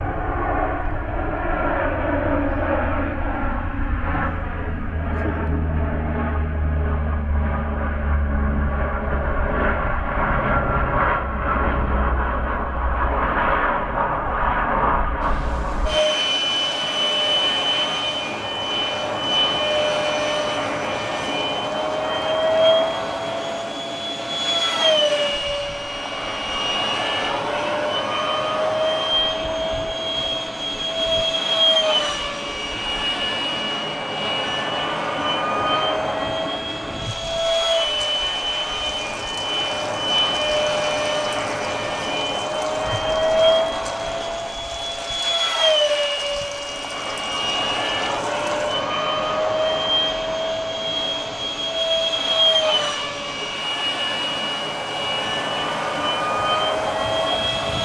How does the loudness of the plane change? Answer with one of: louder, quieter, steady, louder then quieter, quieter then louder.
steady.